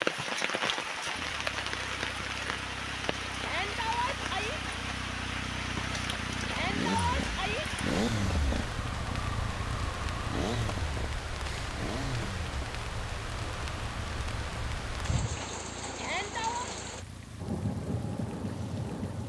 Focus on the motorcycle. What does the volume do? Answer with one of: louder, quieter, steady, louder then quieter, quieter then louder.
louder then quieter.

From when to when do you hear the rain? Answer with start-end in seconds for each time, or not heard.
0.0-19.2.